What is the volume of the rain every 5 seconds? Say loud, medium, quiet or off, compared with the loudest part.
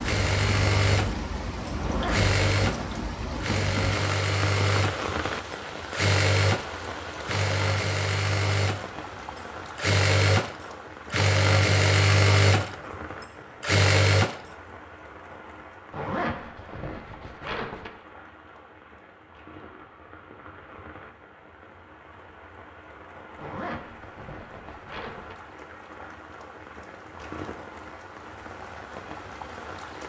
loud, loud, medium, quiet, quiet, medium.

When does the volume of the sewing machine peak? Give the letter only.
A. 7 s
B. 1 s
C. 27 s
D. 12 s
D.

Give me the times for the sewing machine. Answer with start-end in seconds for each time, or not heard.
0.0-14.6.